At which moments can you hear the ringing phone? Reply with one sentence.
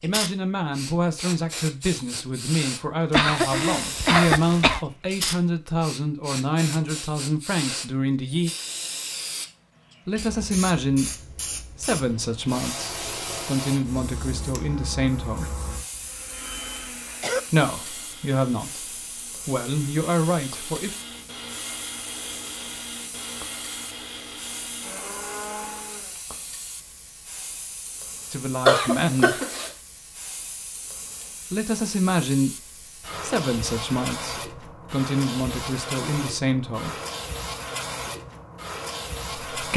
You can't hear the ringing phone here.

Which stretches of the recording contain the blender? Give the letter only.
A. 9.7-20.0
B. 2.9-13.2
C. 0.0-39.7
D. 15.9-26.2
D.